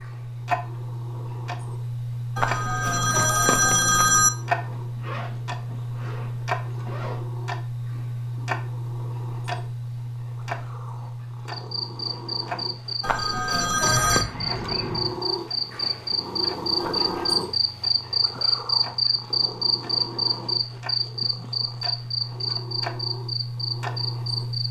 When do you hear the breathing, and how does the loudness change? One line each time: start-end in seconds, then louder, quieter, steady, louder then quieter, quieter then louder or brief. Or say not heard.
not heard.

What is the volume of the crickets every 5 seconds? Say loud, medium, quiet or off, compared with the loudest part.
off, off, medium, loud, loud.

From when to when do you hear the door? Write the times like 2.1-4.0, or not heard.
not heard.